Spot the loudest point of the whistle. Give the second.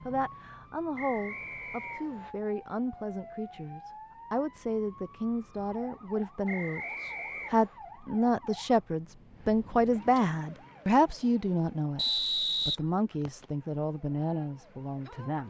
12 s.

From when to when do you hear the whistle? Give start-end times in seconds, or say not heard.
0.9-2.4, 6.5-7.8, 11.9-13.4.